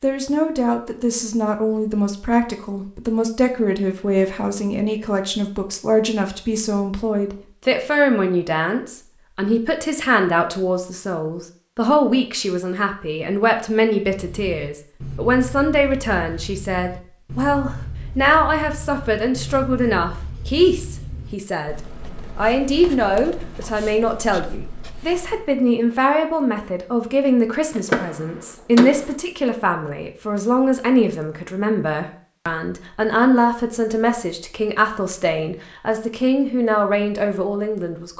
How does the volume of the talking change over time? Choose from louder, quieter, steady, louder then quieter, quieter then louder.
steady.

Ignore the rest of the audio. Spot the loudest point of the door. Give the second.
28 s.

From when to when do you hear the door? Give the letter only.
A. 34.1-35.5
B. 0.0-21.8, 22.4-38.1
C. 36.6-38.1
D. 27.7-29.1
D.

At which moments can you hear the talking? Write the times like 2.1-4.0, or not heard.
0.0-21.8, 22.4-38.1.